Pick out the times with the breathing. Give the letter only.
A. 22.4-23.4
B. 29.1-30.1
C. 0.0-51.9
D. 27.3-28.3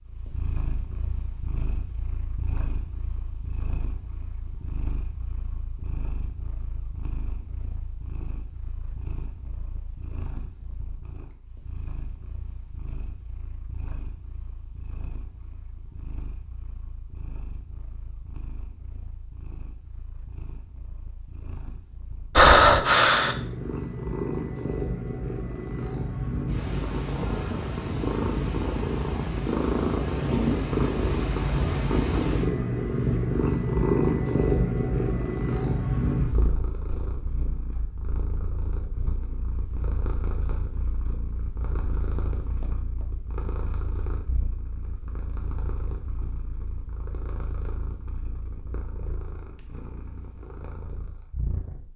A.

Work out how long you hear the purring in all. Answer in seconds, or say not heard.
52 s.